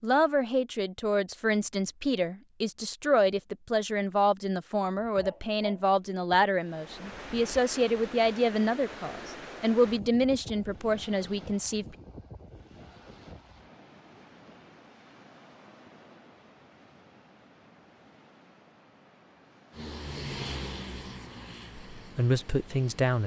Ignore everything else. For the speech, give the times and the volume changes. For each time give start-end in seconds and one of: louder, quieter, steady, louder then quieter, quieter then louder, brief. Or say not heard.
0.0-11.8 steady
21.9-23.2 brief.